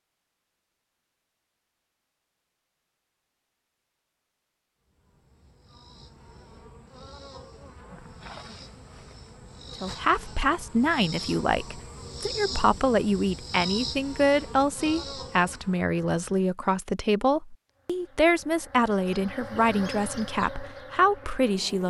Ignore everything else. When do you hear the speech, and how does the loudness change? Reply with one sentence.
You can hear the speech from 9.8 to 21.8 s, at a steady volume.